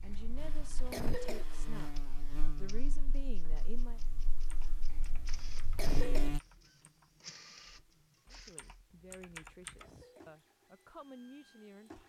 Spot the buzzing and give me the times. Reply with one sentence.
You can hear the buzzing from 0.2 to 6.4 s.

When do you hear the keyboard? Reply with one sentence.
The keyboard can be heard from 4.3 to 9.9 s.